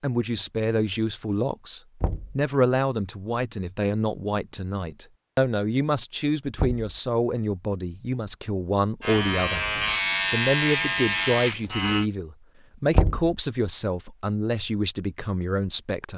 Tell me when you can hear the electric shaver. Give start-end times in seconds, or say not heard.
9.0-12.1.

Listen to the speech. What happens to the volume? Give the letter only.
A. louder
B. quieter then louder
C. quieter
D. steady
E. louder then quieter
D.